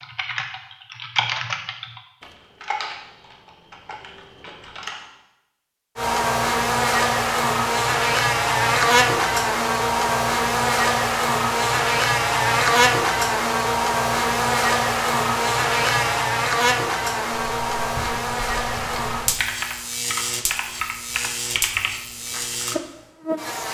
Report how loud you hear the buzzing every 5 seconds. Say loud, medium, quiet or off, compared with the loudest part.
off, loud, loud, loud, medium.